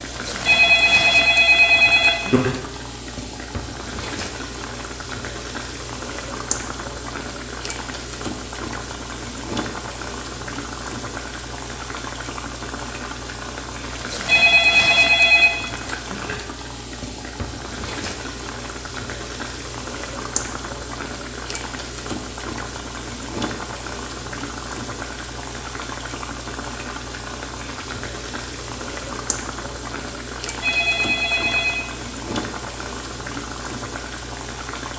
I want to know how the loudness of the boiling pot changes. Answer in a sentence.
The loudness of the boiling pot stays about the same.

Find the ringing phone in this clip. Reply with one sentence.
The ringing phone can be heard from 0.5 to 2.4 s, from 14.2 to 15.5 s and from 30.6 to 31.9 s.